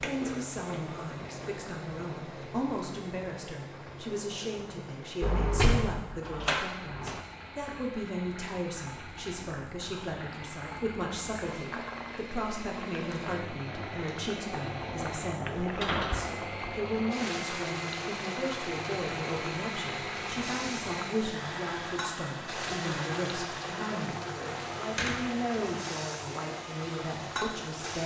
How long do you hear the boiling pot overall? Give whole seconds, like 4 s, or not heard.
28 s.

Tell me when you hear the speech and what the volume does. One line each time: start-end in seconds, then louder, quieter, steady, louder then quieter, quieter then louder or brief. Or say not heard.
0.0-28.0 steady.